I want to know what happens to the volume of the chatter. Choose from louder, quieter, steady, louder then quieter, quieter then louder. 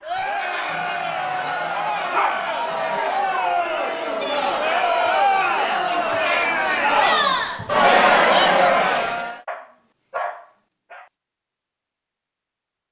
louder.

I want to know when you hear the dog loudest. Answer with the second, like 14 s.
2 s.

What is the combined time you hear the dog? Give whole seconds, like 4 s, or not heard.
4 s.